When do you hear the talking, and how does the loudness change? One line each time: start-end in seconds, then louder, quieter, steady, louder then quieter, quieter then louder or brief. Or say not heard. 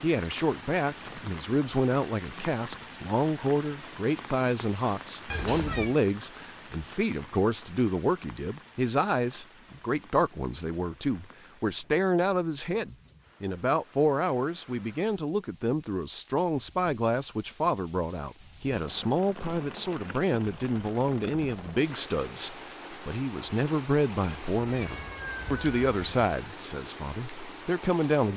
0.0-28.3 steady.